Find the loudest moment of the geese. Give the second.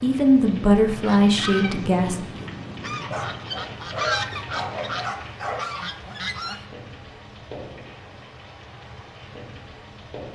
4 s.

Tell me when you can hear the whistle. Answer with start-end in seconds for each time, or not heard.
not heard.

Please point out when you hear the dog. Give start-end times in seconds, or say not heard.
3.1-5.7.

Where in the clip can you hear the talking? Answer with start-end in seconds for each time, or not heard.
0.0-2.2.